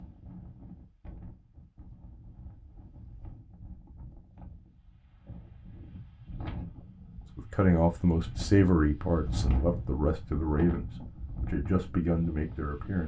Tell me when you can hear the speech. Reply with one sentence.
You can hear the speech from 7.3 to 13.0 s.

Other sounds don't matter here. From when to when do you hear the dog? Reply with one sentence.
The dog can't be heard in this clip.